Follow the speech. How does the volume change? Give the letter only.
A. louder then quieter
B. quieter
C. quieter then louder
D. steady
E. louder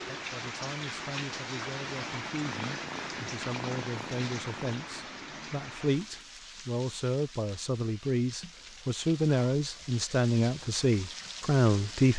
E.